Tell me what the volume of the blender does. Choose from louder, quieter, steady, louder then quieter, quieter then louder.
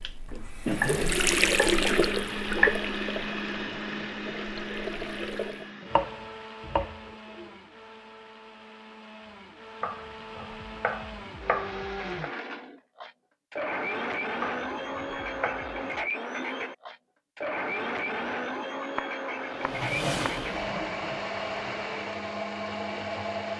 quieter then louder.